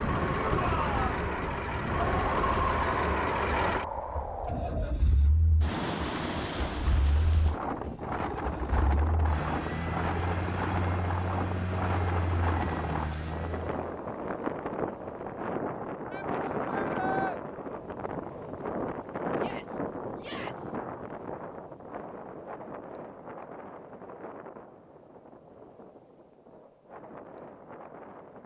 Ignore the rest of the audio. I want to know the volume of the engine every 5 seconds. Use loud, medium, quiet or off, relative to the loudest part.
loud, medium, medium, off, off, off.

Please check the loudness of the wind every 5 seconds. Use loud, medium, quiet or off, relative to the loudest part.
loud, loud, loud, loud, medium, quiet.